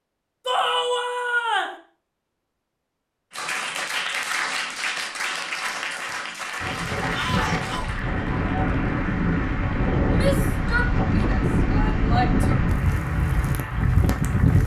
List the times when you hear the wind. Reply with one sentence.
You can hear the wind from 6.5 to 14.6 s.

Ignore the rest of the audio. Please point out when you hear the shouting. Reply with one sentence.
The shouting can be heard from 0.5 to 1.8 s, from 7.1 to 7.9 s and from 10.1 to 12.6 s.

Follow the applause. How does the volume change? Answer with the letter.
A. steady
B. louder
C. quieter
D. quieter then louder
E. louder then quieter
C.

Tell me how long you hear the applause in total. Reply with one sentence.
The applause can be heard for 11 seconds in total.